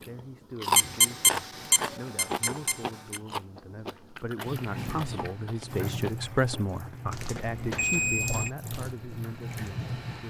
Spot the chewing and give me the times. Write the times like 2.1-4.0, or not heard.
0.0-6.2.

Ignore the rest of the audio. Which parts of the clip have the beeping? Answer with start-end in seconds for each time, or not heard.
0.8-3.2, 7.1-8.5.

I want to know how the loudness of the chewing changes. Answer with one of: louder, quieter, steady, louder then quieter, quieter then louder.
quieter.